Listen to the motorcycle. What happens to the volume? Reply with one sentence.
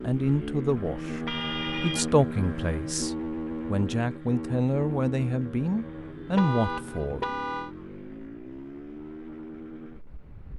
The volume of the motorcycle goes down.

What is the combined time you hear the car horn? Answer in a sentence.
The car horn can be heard for 2 seconds in total.